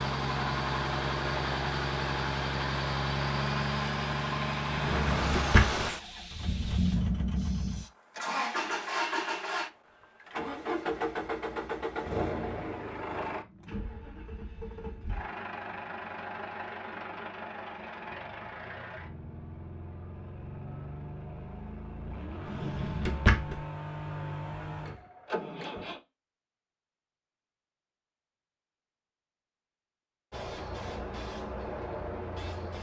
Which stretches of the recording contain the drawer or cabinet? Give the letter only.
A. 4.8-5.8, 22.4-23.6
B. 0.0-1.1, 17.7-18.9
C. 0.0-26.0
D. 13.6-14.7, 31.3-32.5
A.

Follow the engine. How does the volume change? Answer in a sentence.
The volume of the engine goes down.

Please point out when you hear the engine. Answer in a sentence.
The engine can be heard from 0.0 to 26.0 s.